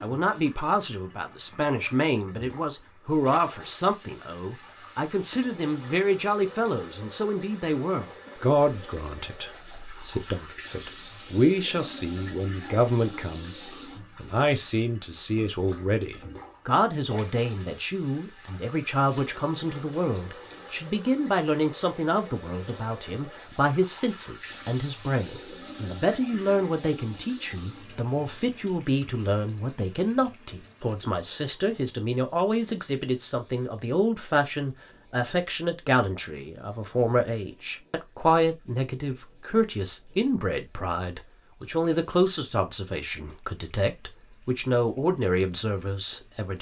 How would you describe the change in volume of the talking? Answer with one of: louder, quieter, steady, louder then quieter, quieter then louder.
steady.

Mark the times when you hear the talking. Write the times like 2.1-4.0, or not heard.
0.0-46.5.